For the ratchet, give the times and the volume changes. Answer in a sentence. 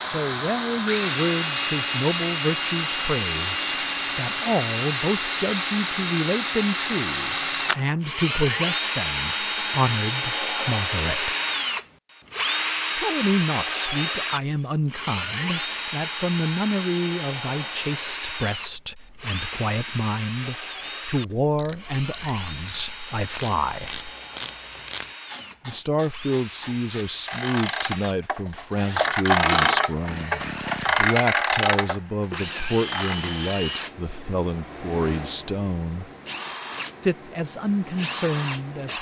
The ratchet can be heard from 21.1 to 33.4 s, getting louder.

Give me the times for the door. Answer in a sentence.
The door can't be heard in this clip.